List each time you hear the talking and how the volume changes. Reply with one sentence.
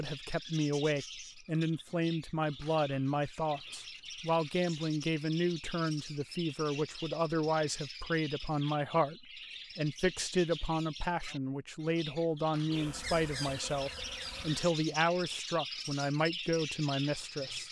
You can hear the talking from 0.0 to 17.6 s, at a steady volume.